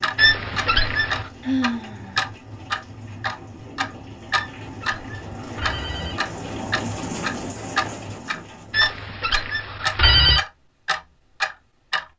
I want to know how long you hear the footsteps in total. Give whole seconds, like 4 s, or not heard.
not heard.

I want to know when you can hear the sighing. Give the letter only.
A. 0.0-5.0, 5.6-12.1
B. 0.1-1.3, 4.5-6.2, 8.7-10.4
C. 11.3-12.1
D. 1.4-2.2
D.